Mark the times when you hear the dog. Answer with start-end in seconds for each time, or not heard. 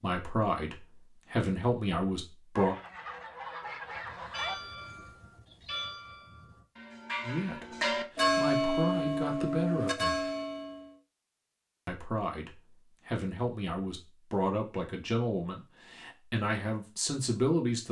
not heard.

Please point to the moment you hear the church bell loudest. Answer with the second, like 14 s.
8 s.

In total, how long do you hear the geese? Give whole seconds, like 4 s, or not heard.
2 s.